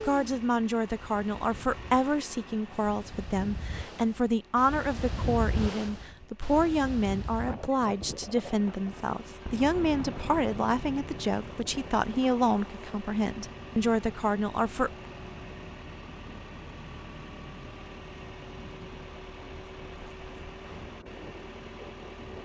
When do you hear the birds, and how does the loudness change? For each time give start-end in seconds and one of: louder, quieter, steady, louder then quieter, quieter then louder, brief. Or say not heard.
not heard.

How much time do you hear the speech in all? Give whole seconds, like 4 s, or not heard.
15 s.